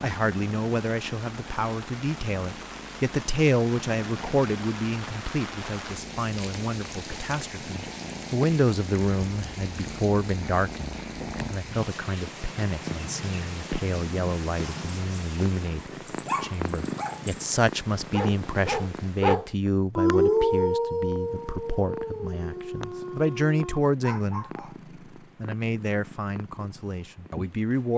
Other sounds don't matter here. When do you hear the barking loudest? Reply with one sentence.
The volume of the barking peaks at 20 seconds.